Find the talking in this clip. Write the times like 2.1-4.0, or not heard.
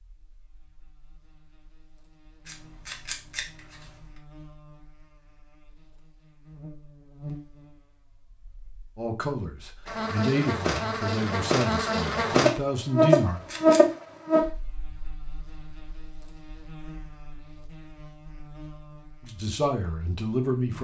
8.9-13.4, 19.2-20.7.